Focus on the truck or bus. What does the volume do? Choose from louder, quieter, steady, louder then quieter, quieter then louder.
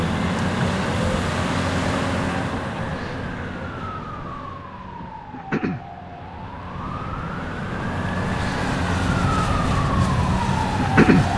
quieter then louder.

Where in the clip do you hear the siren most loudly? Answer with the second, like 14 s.
11 s.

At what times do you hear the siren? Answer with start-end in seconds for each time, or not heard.
2.8-11.3.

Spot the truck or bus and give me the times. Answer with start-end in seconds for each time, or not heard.
0.0-11.3.